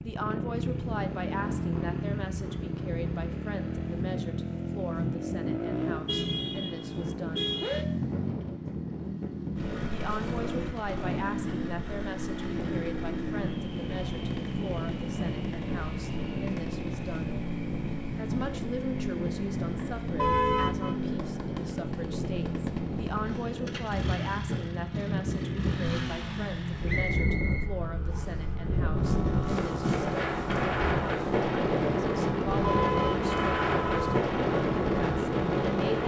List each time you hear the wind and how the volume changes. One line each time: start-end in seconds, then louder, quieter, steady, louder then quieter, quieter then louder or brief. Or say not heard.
0.0-36.0 louder.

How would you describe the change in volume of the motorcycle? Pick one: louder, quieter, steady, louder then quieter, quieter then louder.
steady.